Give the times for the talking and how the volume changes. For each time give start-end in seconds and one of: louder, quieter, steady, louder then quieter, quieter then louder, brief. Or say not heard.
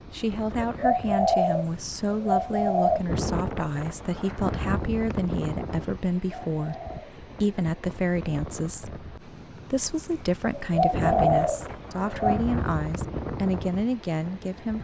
0.1-14.7 steady.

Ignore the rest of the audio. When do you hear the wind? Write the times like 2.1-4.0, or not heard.
0.0-14.7.